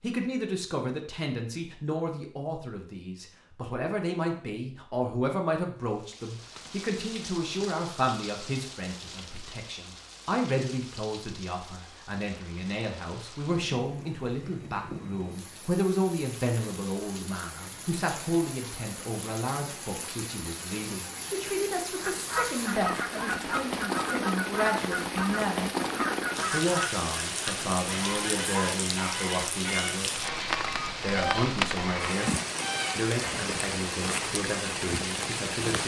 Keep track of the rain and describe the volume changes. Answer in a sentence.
The loudness of the rain goes up.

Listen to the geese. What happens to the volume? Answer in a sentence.
The volume of the geese stays about the same.